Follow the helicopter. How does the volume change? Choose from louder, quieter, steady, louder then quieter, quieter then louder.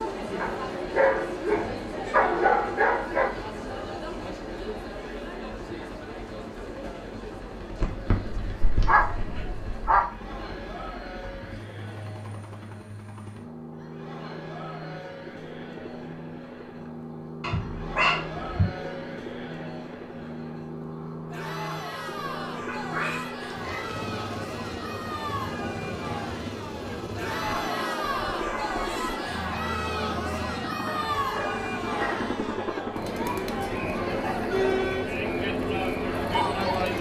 louder.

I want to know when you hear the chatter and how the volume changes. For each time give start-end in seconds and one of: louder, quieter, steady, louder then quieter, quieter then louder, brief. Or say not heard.
0.0-36.9 quieter then louder.